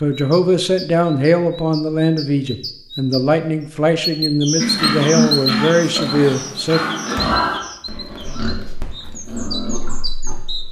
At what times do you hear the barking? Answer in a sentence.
You can't hear the barking here.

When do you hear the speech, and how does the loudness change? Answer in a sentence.
The speech can be heard from 0.0 to 6.8 s, at a steady volume.